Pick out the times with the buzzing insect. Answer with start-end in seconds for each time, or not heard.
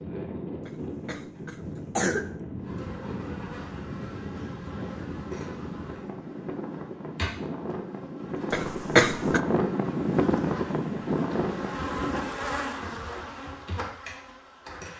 2.5-14.9.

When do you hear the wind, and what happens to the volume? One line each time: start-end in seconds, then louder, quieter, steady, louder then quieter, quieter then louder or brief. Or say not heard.
0.0-12.3 louder.